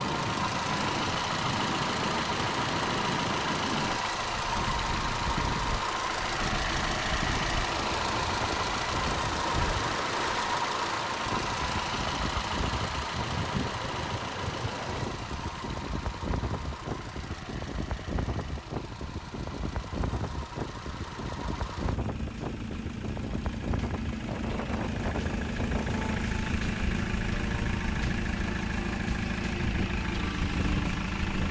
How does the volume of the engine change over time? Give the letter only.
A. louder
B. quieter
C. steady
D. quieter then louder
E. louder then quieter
D.